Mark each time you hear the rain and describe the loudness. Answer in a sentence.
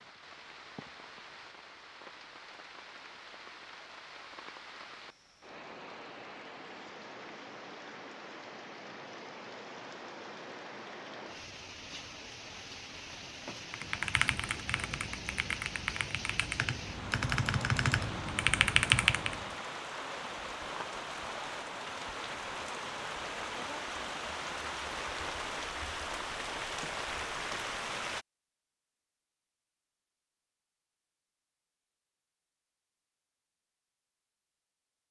The rain can be heard from 0.0 to 28.2 s, getting louder.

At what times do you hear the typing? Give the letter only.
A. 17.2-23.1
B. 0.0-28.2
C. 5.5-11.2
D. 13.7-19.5
D.